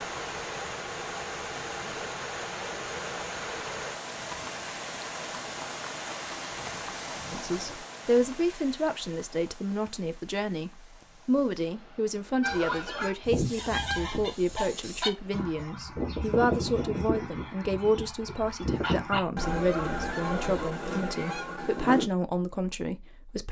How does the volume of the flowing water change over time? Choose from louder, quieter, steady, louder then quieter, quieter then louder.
quieter.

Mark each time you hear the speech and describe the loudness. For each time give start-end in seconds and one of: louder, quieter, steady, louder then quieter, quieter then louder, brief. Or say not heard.
7.3-23.4 steady.